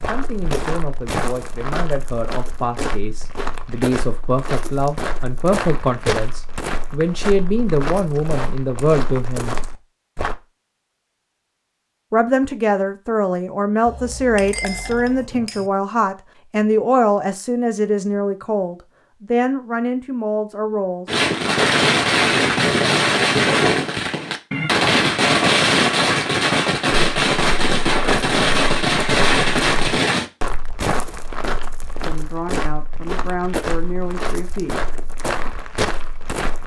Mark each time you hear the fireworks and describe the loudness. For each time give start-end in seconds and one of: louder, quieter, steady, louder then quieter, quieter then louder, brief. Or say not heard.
21.1-30.3 steady.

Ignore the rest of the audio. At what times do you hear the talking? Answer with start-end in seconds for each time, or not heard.
0.0-9.6, 12.1-21.1, 32.0-34.8.